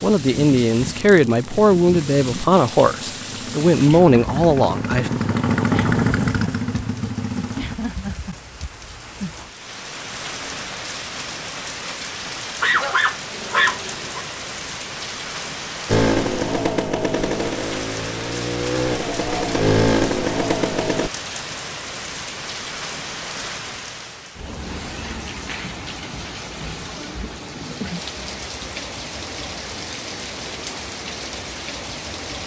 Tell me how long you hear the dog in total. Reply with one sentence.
You can hear the dog for 2 seconds altogether.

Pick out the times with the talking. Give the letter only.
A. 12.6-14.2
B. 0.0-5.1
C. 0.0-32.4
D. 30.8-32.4
B.